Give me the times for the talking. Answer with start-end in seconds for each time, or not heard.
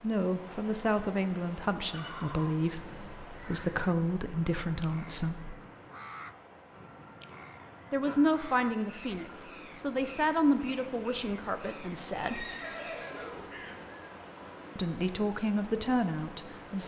0.0-5.5, 7.9-12.4, 14.8-16.8.